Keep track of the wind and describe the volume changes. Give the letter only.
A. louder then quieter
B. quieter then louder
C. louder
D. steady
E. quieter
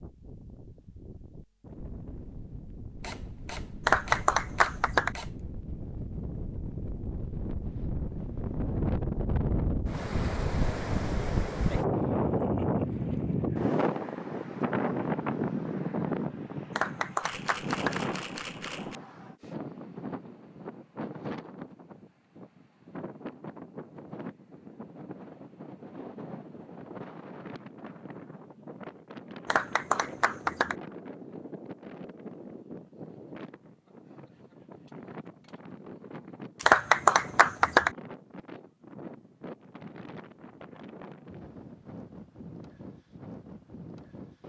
A.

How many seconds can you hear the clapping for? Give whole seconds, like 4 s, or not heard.
5 s.